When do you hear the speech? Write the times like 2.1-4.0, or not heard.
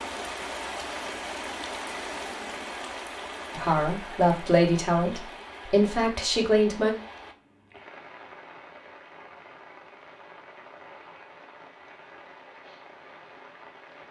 3.5-7.0.